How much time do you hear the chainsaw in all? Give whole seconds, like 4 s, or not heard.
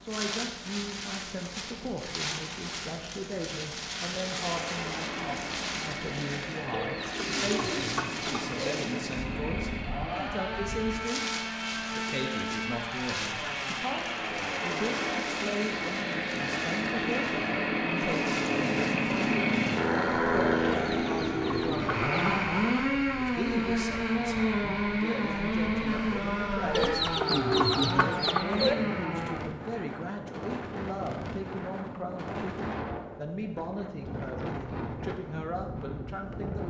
25 s.